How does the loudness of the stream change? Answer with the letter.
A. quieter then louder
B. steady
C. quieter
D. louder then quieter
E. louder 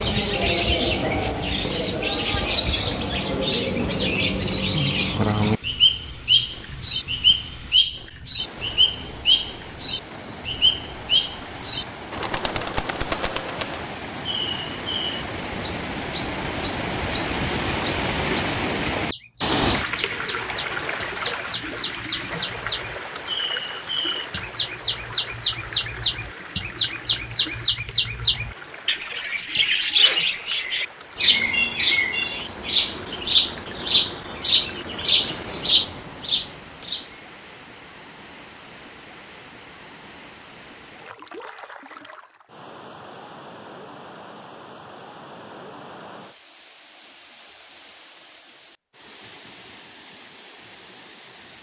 D.